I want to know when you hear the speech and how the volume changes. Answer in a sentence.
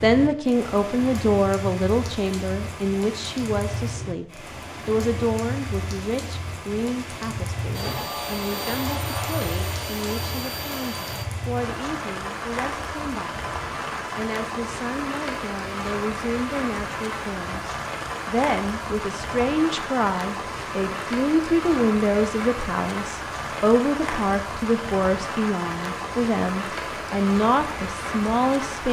You can hear the speech from 0.0 to 13.4 s, getting quieter; and from 14.2 to 28.8 s, getting louder.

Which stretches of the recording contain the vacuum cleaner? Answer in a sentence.
You can hear the vacuum cleaner from 7.7 to 11.2 s.